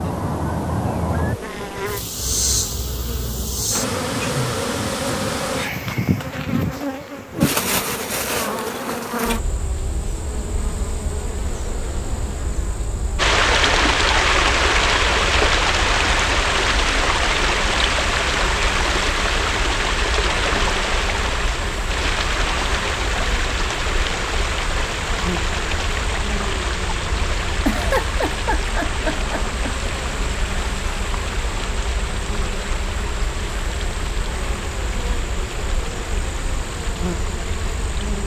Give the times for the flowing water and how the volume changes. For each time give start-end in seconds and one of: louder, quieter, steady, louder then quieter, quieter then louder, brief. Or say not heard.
13.2-38.2 quieter.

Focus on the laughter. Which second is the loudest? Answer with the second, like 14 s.
28 s.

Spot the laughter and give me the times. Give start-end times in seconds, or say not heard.
27.6-29.9.